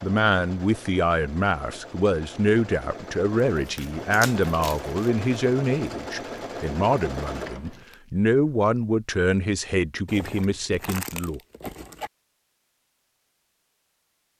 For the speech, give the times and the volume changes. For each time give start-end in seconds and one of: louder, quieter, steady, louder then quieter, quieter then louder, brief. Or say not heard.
0.0-11.4 steady.